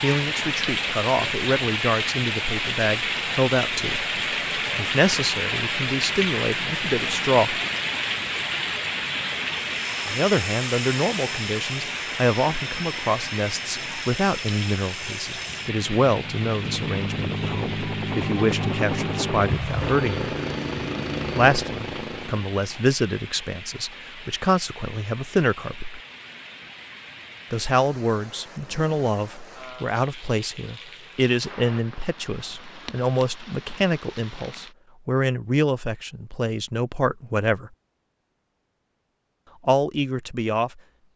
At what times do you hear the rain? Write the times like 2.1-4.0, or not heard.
0.0-34.8.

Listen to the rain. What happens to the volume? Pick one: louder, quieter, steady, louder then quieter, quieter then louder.
quieter.